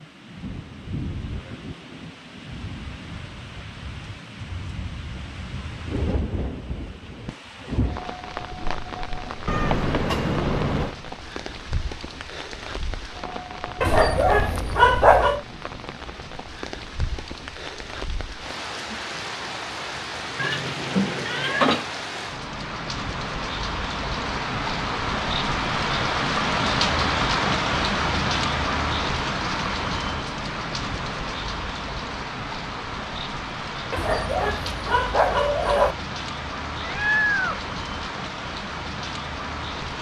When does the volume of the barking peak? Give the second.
15 s.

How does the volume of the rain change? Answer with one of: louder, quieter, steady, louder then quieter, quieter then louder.
louder then quieter.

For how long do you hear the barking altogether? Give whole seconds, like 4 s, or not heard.
4 s.